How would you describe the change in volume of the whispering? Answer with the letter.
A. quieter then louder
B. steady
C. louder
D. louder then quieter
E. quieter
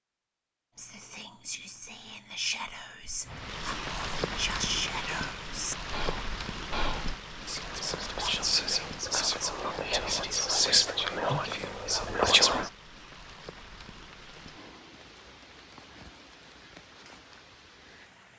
C.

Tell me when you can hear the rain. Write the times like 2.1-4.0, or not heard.
3.2-18.3.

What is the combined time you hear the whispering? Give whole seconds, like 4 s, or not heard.
12 s.